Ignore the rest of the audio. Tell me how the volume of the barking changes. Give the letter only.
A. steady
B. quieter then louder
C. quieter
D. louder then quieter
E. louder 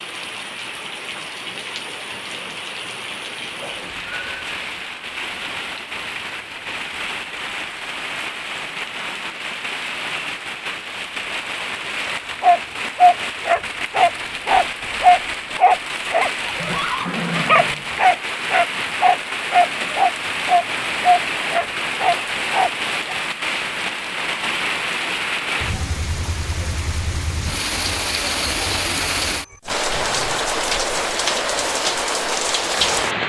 A.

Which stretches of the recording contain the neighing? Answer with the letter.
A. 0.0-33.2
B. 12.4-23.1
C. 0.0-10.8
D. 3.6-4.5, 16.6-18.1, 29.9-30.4
D.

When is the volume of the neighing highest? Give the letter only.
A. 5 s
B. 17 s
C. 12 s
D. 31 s
B.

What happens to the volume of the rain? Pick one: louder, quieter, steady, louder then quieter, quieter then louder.
louder.